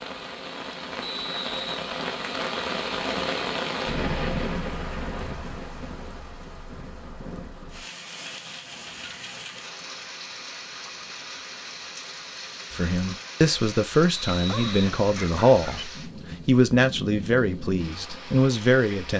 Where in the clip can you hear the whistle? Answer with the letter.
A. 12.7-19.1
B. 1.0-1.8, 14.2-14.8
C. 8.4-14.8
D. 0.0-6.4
B.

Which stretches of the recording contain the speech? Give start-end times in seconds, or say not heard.
12.7-19.1.